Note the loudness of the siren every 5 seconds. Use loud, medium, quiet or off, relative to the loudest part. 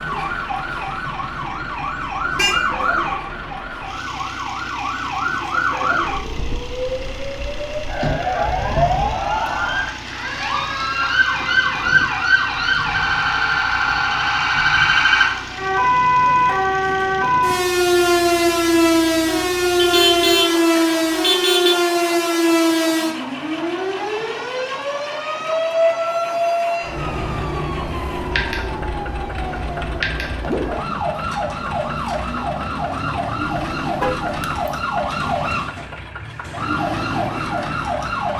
medium, medium, loud, loud, loud, medium, medium, medium.